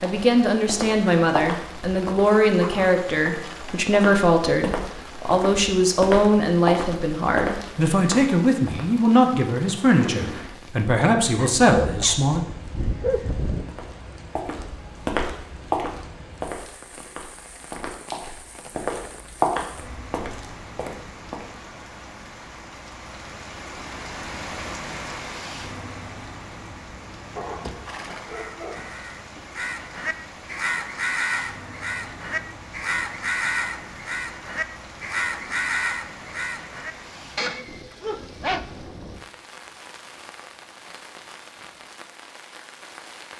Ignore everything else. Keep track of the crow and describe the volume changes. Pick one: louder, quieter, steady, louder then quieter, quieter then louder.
louder.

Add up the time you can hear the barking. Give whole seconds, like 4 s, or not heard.
7 s.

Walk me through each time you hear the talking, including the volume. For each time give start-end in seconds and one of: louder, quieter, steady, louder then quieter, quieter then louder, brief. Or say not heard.
0.0-12.4 steady.